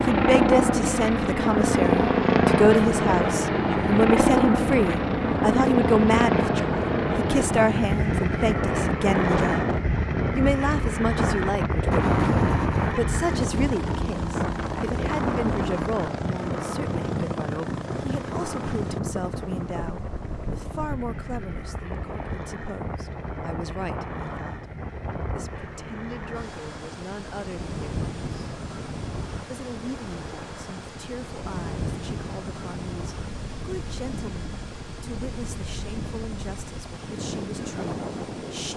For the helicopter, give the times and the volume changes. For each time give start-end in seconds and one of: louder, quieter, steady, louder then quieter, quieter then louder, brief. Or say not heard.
0.0-38.7 quieter.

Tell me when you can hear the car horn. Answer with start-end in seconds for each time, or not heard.
11.9-13.0.